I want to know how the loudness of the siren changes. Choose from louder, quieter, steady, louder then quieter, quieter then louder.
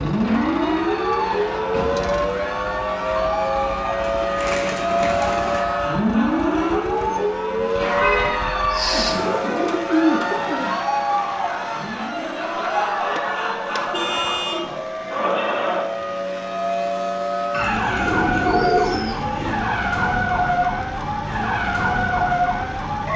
quieter then louder.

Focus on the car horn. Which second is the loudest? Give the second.
8 s.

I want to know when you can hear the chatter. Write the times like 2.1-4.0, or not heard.
0.1-15.9.